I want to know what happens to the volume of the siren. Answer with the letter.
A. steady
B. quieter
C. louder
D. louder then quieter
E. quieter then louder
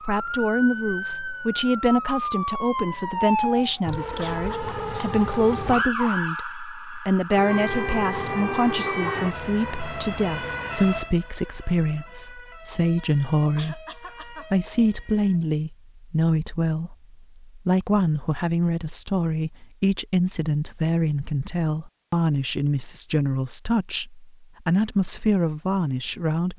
B.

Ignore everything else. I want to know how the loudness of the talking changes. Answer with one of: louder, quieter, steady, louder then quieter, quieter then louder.
steady.